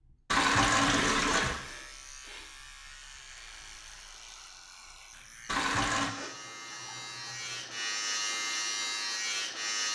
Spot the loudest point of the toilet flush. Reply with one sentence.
The loudest moment of the toilet flush is at 1 second.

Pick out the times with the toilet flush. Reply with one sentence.
The toilet flush can be heard from 0.3 to 1.6 s and from 5.5 to 6.1 s.